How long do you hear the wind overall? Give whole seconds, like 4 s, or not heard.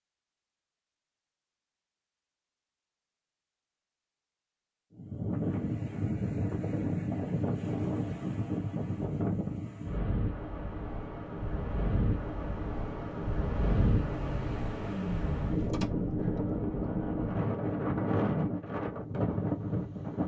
15 s.